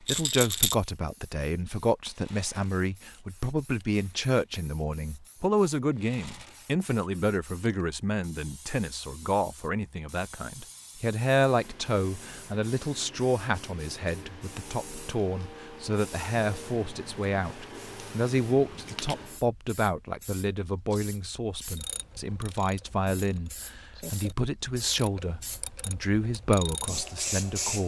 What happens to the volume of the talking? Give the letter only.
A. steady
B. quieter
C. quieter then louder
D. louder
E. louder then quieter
A.